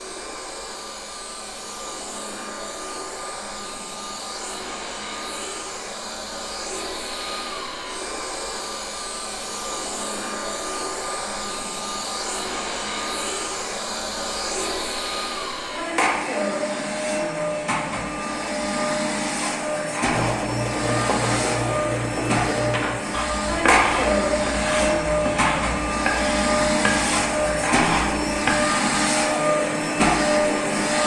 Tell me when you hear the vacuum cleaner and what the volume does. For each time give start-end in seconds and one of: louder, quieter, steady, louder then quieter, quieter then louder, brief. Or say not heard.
0.0-31.0 louder.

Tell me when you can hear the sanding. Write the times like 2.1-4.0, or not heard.
20.1-28.8.